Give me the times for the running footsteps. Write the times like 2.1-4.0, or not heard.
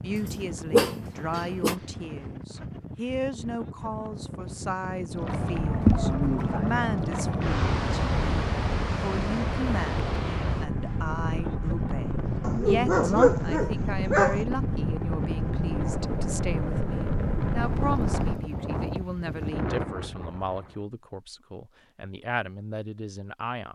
not heard.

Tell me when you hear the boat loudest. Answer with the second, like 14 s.
6 s.